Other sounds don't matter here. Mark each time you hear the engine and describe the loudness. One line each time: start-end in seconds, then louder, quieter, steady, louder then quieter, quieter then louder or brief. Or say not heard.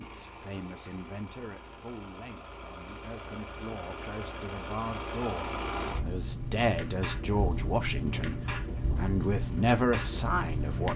0.0-10.9 louder.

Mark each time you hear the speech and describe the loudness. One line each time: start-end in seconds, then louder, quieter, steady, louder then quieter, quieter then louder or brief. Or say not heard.
0.0-10.9 louder.